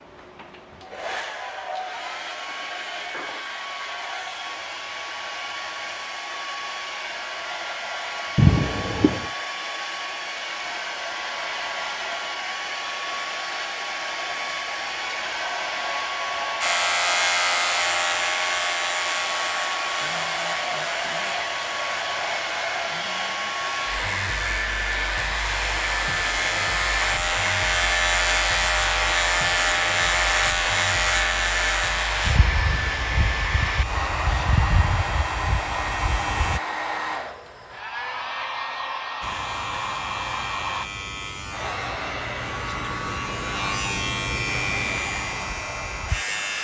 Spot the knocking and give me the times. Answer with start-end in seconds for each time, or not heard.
8.3-9.3.